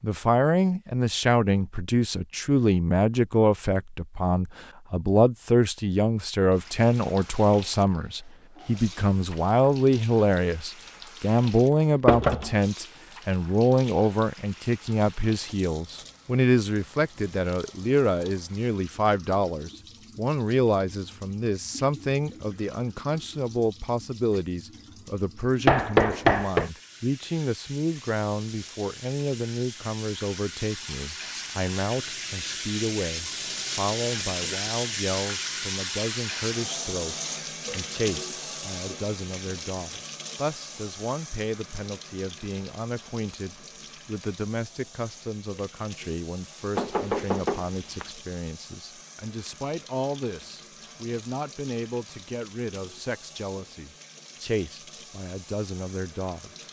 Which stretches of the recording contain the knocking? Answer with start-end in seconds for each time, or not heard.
12.1-12.5, 25.6-26.7, 46.8-48.1.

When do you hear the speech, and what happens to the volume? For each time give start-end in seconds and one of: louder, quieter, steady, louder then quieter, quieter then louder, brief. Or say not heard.
0.0-56.6 quieter.